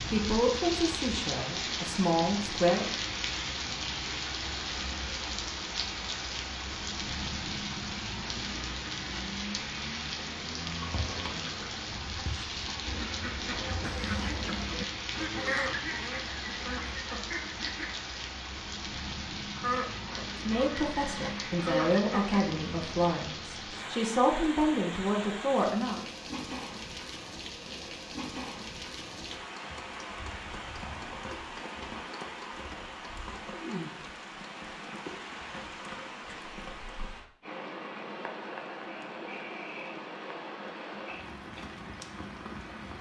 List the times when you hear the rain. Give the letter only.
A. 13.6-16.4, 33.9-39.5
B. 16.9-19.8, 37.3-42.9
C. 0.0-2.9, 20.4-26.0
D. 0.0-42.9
D.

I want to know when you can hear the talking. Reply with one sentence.
The talking can be heard from 0.0 to 2.9 s and from 20.4 to 26.0 s.